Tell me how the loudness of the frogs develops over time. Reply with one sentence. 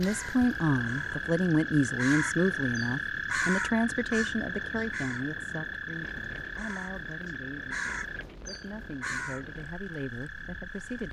The volume of the frogs goes down.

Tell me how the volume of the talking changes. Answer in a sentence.
The volume of the talking goes down.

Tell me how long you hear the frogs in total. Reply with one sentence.
The frogs can be heard for 11 seconds in total.